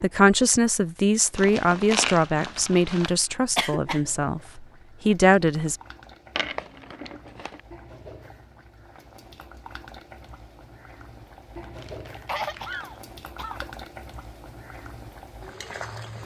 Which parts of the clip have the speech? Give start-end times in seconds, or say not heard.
0.0-5.8.